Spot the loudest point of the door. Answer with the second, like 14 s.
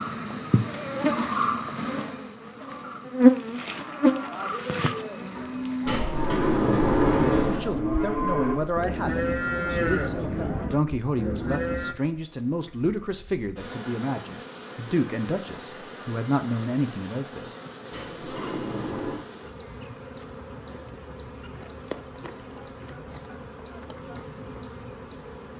7 s.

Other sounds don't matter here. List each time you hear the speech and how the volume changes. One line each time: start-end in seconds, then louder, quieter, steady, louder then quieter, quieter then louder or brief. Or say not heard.
7.5-17.6 steady.